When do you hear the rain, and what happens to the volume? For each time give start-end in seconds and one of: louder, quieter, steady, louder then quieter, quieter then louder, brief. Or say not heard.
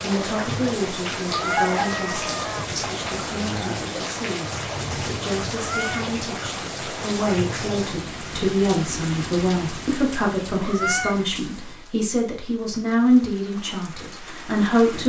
0.0-15.0 quieter.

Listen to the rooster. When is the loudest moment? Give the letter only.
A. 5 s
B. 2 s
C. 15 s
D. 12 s
B.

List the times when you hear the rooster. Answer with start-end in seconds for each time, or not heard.
1.3-3.9.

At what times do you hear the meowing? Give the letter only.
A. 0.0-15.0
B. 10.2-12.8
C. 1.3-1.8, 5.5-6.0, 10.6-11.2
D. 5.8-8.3
C.